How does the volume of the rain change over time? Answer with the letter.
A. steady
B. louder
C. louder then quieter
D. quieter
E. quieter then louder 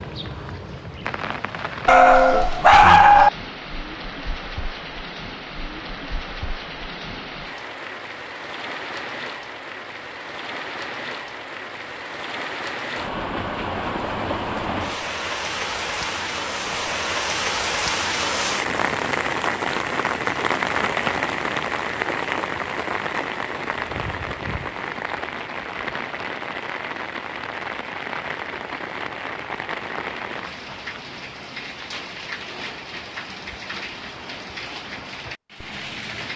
C.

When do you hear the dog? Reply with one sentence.
The dog can be heard from 1.9 to 3.3 s.